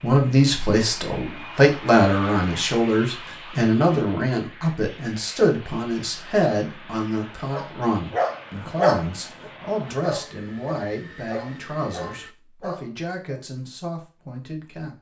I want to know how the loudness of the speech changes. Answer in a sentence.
The loudness of the speech goes down.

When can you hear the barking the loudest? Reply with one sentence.
The volume of the barking peaks at 9 seconds.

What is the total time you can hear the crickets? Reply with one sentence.
You can't hear the crickets here.